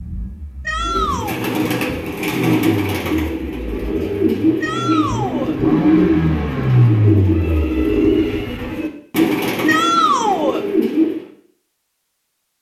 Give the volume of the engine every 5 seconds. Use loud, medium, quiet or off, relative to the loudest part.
quiet, loud, off.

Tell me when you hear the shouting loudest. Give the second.
10 s.